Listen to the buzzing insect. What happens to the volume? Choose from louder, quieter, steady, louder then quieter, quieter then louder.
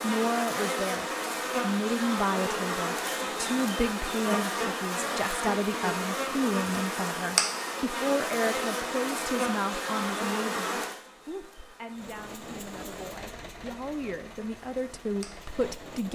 quieter.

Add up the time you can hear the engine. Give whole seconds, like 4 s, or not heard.
4 s.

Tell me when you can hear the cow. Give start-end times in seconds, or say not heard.
not heard.